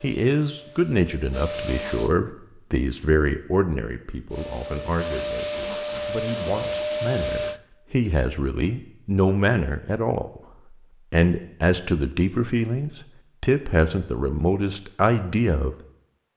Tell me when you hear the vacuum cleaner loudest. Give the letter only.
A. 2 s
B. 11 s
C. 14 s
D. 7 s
D.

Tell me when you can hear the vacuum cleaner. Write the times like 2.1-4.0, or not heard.
0.0-2.1, 4.3-7.6.